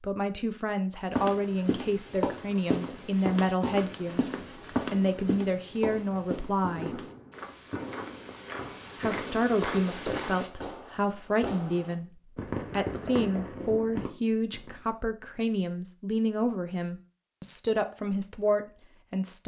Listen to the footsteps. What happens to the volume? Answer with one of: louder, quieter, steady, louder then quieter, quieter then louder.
quieter then louder.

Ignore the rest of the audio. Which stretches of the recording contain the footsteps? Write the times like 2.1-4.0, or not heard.
1.1-10.5.